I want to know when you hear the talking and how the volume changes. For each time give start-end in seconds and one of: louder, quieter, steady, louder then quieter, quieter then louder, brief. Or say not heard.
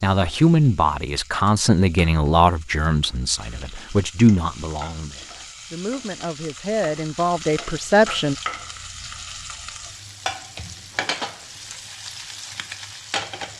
0.0-8.3 quieter then louder.